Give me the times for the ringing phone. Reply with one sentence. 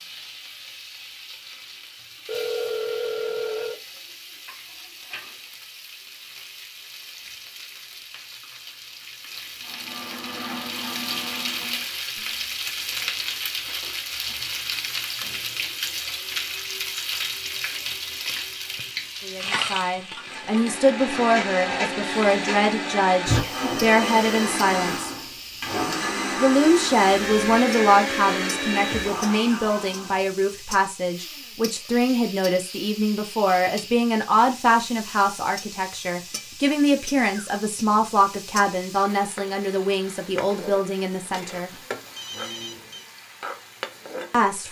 You can hear the ringing phone from 2.2 to 3.8 s, from 23.4 to 24.6 s and from 41.7 to 43.1 s.